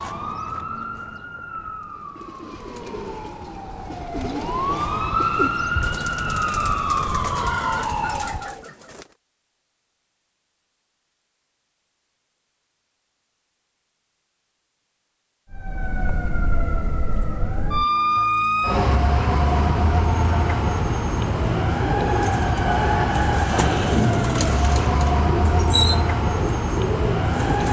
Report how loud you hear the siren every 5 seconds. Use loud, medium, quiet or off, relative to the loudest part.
medium, loud, off, loud, loud, loud.